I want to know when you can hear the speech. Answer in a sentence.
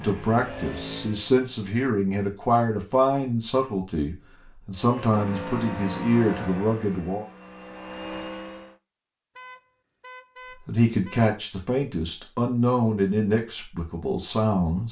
You can hear the speech from 0.0 to 7.2 s and from 10.7 to 14.8 s.